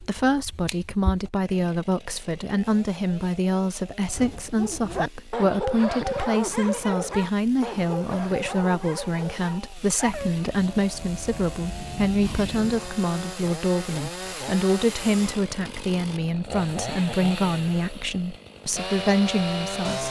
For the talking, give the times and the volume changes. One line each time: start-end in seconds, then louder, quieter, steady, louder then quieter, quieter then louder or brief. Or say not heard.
0.0-20.0 steady.